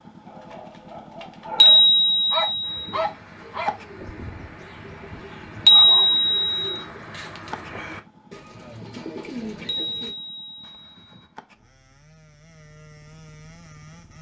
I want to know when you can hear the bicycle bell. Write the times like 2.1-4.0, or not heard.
1.6-2.9, 5.7-6.8, 9.7-11.2.